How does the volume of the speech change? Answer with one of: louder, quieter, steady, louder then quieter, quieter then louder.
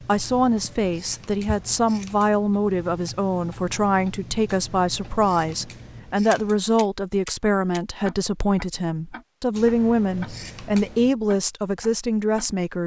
steady.